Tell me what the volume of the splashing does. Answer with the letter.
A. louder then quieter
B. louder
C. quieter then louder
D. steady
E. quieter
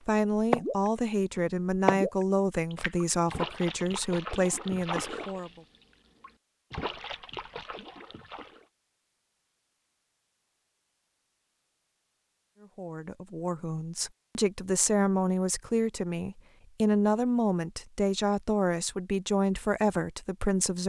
C.